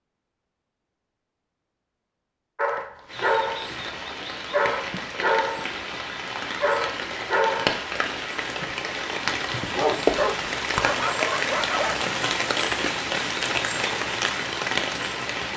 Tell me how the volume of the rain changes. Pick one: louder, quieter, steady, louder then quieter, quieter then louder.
louder.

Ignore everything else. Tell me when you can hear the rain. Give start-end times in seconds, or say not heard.
3.0-15.5.